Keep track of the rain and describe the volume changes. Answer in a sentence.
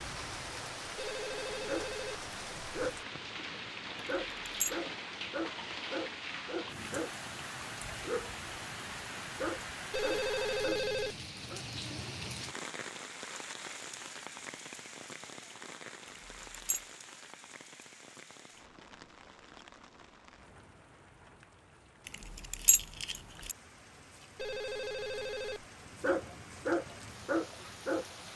The loudness of the rain goes down.